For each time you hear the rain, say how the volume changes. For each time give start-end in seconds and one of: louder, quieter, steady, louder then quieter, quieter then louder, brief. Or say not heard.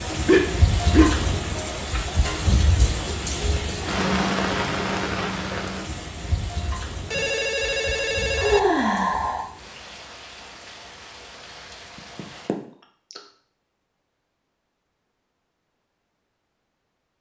0.0-12.5 quieter.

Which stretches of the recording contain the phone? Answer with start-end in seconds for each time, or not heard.
7.0-8.6.